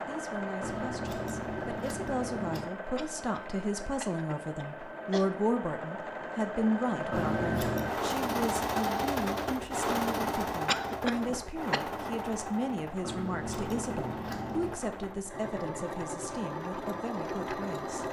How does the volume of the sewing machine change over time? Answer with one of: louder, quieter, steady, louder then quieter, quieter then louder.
louder then quieter.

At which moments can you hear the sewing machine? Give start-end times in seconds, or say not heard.
0.0-18.0.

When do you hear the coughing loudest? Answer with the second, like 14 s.
11 s.